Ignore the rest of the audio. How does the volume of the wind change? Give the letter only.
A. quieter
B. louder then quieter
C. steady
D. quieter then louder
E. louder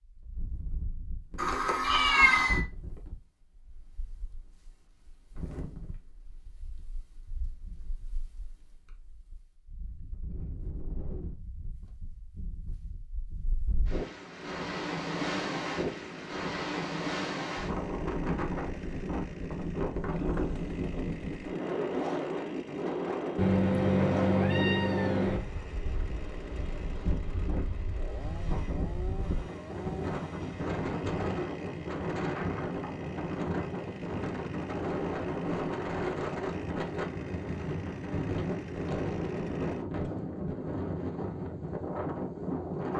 E.